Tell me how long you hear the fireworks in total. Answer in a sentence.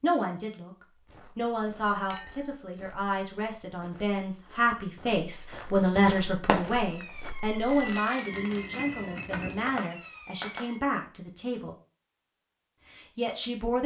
The fireworks can be heard for 5 seconds in total.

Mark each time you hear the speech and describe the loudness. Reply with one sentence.
You can hear the speech briefly from 0.0 to 0.7 s; from 1.4 to 11.8 s, getting louder then quieter; and briefly from 12.9 to 13.8 s.